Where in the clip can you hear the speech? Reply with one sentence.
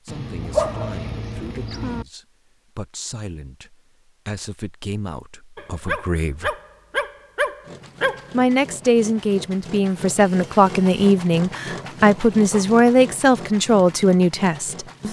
You can hear the speech from 0.0 to 6.5 s and from 8.3 to 15.0 s.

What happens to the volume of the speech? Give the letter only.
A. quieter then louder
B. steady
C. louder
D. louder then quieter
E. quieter
C.